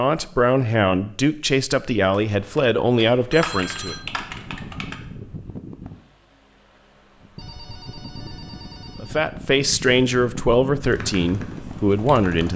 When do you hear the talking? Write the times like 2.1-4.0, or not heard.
0.0-4.0, 9.0-12.5.